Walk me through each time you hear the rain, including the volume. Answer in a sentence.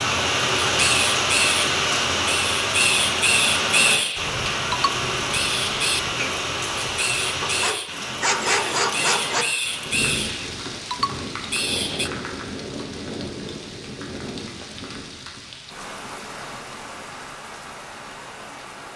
You can hear the rain from 0.0 to 18.9 s, getting quieter.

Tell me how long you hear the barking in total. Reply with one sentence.
You can hear the barking for 2 seconds altogether.